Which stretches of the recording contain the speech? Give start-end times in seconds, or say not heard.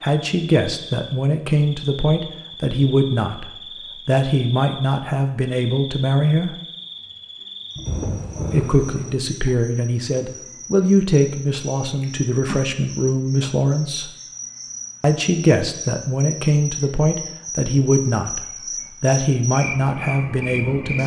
0.0-3.5, 4.0-6.5, 8.5-14.1, 15.0-18.4, 19.0-21.0.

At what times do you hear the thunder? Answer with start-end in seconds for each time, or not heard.
7.8-9.2.